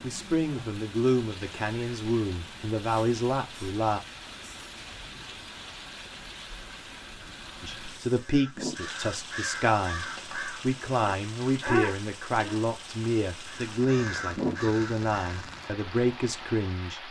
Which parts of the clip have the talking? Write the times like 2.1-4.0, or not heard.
0.0-4.0, 7.6-17.0.